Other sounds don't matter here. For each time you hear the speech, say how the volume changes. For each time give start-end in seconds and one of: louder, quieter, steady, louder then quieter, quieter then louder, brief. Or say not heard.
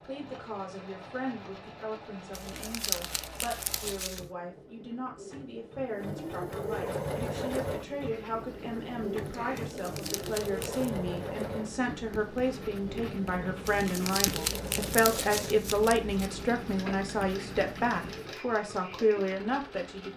0.0-20.1 louder.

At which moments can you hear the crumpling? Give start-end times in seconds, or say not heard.
2.3-4.2, 9.6-10.9, 13.7-16.3.